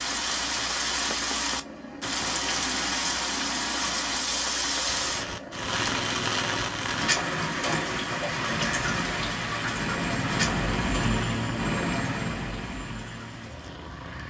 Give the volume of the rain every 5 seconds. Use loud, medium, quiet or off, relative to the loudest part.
loud, loud, medium.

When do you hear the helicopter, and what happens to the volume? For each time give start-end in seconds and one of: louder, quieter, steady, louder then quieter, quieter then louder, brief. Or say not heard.
0.0-14.2 louder.